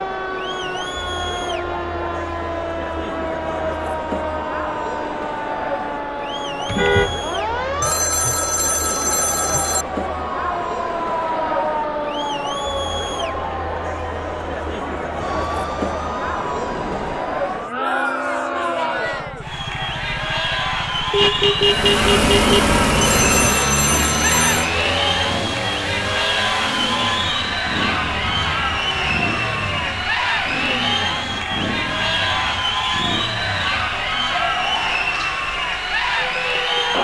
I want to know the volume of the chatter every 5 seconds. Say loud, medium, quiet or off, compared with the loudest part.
medium, medium, medium, loud, loud, loud, loud, loud.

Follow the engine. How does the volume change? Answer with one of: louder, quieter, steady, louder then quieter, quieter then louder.
quieter.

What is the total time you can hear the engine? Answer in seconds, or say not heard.
8 s.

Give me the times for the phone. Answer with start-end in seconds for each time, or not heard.
7.8-9.8, 23.0-24.7.